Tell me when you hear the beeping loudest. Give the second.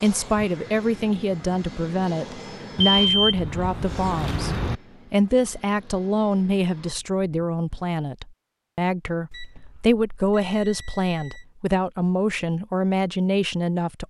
3 s.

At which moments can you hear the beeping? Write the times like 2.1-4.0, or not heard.
2.8-4.8, 9.3-11.4.